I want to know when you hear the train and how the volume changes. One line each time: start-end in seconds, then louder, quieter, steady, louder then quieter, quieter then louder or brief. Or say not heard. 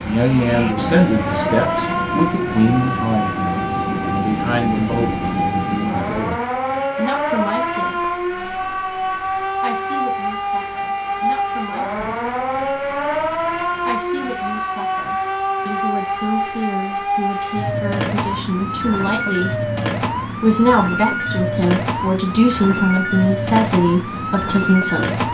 0.0-6.4 steady.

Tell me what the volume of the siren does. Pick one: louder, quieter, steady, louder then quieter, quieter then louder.
steady.